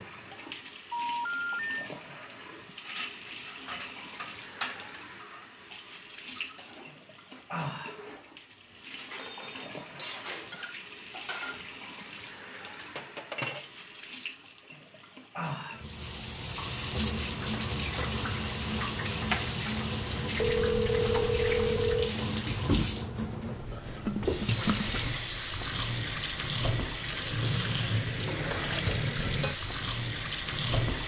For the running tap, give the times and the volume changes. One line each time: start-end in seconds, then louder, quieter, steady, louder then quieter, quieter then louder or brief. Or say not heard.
0.0-31.0 louder.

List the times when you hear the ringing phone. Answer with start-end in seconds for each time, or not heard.
0.9-1.6, 20.4-22.1.